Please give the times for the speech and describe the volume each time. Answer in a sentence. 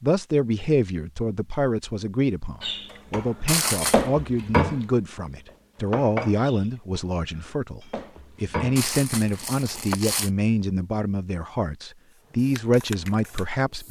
The speech can be heard from 0.0 to 13.8 s, at a steady volume.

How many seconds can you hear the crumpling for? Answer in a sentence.
You can hear the crumpling for 2 seconds altogether.